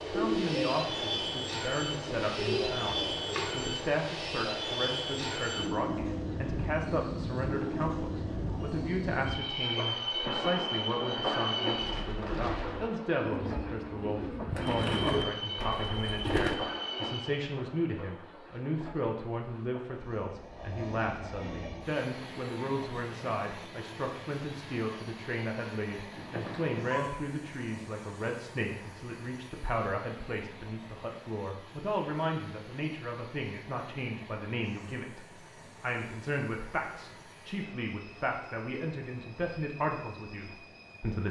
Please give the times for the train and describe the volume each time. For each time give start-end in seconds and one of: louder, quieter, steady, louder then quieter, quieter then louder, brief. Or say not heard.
0.0-41.2 quieter.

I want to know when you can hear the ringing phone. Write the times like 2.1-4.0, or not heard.
26.1-27.1.